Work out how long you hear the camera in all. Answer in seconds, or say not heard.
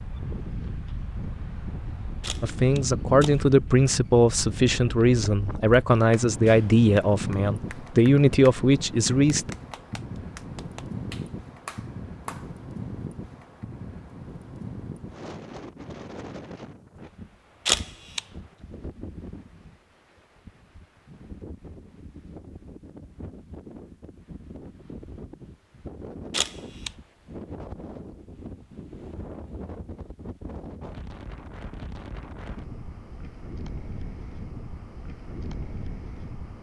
2 s.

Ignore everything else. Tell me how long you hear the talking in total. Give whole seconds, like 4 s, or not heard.
7 s.